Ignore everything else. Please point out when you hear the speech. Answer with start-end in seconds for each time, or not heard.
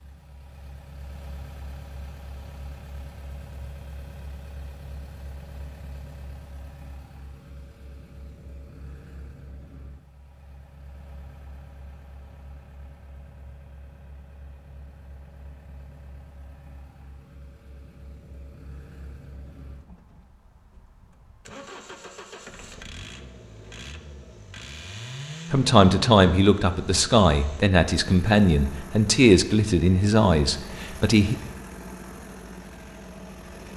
25.5-31.4.